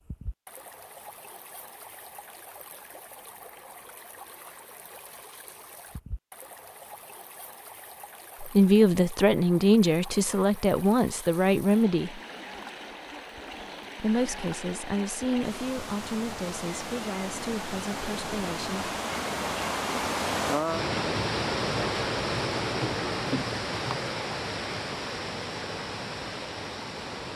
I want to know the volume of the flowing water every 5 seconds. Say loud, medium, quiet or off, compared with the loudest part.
quiet, quiet, quiet, medium, loud, medium.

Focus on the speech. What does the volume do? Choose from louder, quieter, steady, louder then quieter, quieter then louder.
quieter.